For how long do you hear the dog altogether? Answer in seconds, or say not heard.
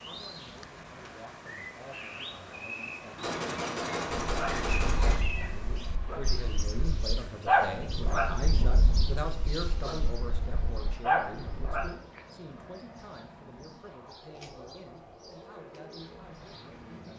8 s.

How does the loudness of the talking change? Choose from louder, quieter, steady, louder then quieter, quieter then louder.
louder then quieter.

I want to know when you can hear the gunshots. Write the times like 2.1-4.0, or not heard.
3.1-5.2.